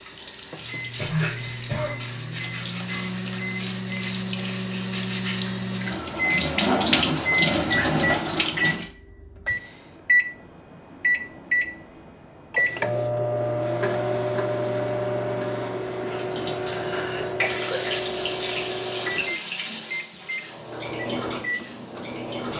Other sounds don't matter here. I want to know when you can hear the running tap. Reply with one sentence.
The running tap can be heard from 0.0 to 8.9 s and from 16.1 to 22.5 s.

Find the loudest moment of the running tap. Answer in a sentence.
The loudest moment of the running tap is at 7 seconds.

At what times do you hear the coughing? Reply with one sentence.
The coughing can be heard from 0.9 to 2.0 s and from 16.0 to 18.0 s.